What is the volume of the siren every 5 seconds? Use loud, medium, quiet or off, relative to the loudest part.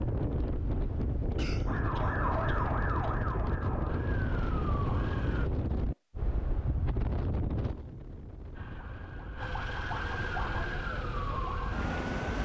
loud, medium, loud.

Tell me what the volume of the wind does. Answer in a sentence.
The volume of the wind goes down.